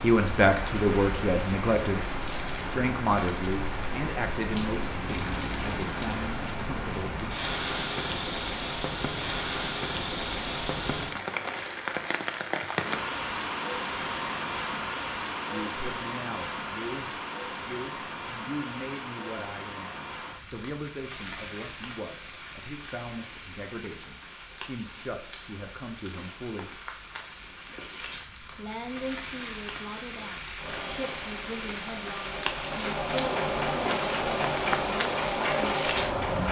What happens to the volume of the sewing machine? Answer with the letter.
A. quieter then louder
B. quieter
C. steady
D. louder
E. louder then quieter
D.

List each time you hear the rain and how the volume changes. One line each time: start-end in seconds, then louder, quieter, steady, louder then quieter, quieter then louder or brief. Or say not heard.
0.0-36.4 quieter then louder.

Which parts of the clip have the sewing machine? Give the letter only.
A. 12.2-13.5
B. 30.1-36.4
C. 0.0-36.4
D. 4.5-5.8
B.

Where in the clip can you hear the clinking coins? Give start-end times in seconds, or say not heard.
4.5-5.8.